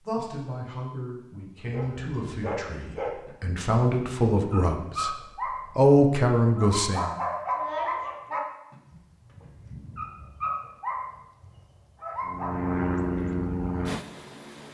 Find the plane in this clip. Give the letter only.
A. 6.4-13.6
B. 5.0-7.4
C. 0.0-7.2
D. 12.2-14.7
D.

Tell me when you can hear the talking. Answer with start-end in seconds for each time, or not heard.
0.0-7.2.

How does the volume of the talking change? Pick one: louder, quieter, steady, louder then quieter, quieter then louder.
louder.